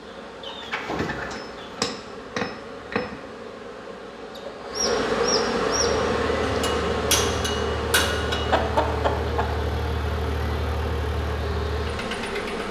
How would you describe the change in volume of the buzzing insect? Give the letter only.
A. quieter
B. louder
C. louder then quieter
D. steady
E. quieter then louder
C.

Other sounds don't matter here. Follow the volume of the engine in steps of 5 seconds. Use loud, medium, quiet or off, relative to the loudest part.
off, loud, loud.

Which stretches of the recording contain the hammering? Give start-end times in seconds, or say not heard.
1.3-3.2, 6.5-8.6.